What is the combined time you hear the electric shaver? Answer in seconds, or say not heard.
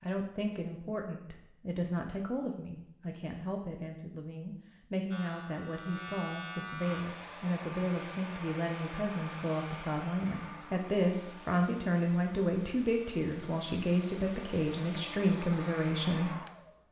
2 s.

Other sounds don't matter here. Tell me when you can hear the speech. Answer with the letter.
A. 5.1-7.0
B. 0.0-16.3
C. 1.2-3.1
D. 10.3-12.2
B.